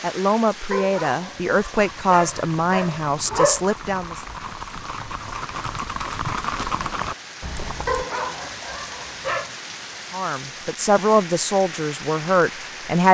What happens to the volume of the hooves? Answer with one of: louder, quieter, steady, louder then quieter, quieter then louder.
louder.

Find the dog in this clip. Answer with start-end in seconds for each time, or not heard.
0.7-3.6, 7.8-9.6.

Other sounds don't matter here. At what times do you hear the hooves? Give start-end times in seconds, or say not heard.
1.7-8.1.